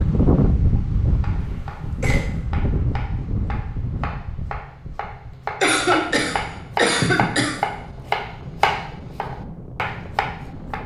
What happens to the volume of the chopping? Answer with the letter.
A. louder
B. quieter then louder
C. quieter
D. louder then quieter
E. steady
A.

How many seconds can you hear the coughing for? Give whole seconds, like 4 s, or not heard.
3 s.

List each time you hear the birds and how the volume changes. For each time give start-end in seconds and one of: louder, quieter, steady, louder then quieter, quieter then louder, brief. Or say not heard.
not heard.